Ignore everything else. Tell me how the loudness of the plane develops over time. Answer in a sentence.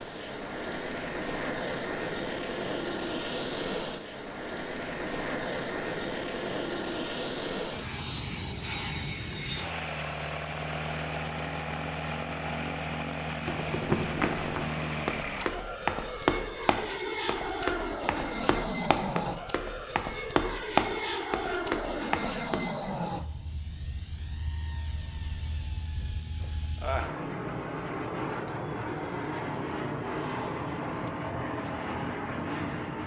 The loudness of the plane stays about the same.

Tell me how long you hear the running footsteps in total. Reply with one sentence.
The running footsteps can be heard for 9 seconds in total.